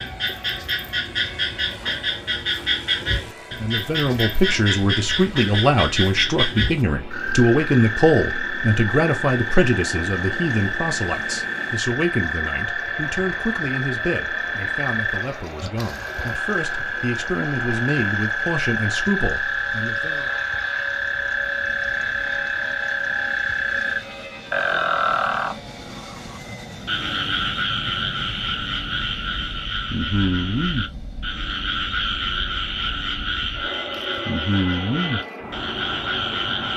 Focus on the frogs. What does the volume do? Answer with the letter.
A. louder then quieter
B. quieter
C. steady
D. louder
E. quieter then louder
C.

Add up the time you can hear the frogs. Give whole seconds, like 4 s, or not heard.
37 s.